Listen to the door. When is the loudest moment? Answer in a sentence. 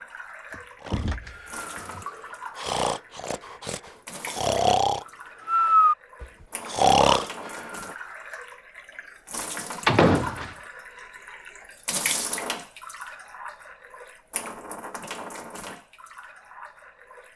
The volume of the door peaks at 10 seconds.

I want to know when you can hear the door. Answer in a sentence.
The door can be heard from 0.5 to 2.0 s and from 9.8 to 10.5 s.